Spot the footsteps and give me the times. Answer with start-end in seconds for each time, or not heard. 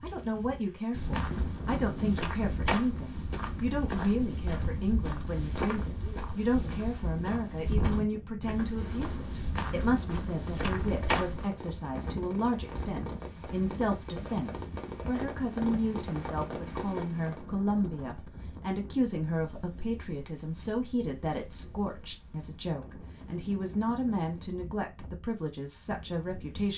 0.9-11.5.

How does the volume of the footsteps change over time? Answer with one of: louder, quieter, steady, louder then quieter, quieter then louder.
steady.